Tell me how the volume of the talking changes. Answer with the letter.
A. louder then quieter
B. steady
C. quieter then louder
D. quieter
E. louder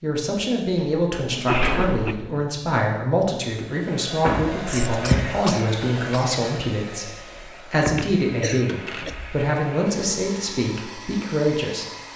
B.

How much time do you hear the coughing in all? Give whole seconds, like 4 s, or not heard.
3 s.